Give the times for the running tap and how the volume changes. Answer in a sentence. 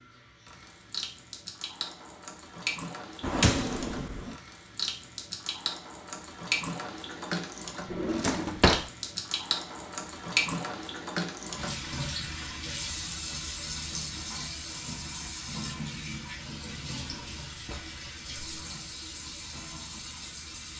You can hear the running tap from 0.0 to 20.7 s, getting louder then quieter.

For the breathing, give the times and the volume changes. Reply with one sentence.
You can't hear the breathing here.